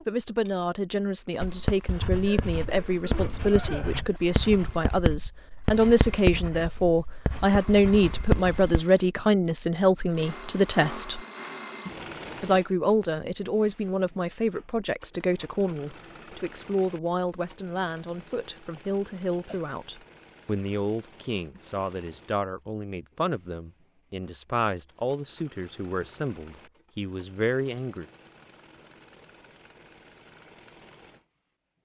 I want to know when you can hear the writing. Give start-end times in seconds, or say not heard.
1.4-8.7.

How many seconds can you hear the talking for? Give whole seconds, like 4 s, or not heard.
27 s.